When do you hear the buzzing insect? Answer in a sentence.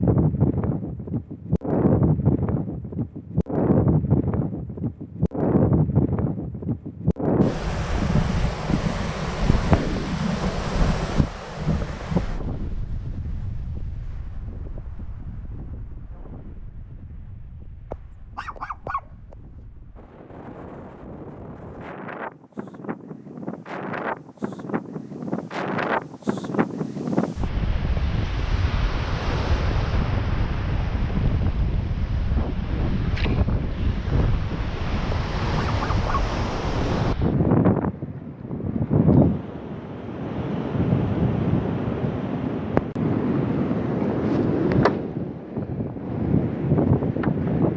The buzzing insect can't be heard in this clip.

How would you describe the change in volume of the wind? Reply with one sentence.
The volume of the wind goes down, then up.